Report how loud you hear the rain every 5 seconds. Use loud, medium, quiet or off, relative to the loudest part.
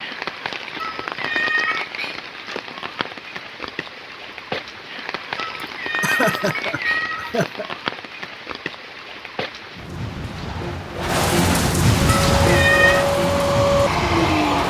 medium, medium, loud.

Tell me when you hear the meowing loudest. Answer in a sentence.
The loudest moment of the meowing is at 13 seconds.